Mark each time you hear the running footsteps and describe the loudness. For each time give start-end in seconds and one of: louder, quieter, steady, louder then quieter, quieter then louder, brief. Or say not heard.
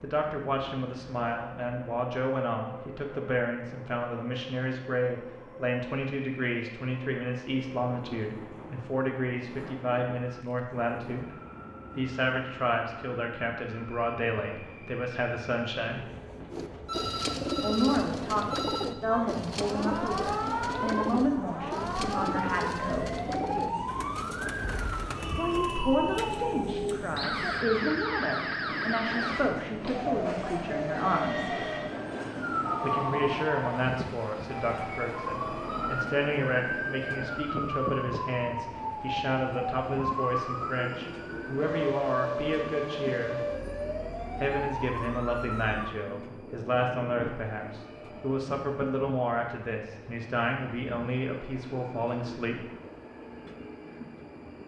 not heard.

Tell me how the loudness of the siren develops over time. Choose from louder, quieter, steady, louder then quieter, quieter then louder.
steady.